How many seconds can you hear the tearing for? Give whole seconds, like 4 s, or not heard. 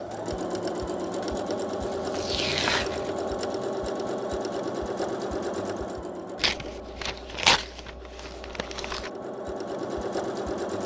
4 s.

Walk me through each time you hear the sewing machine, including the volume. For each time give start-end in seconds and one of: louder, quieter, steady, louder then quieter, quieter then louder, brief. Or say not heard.
0.0-10.8 quieter then louder.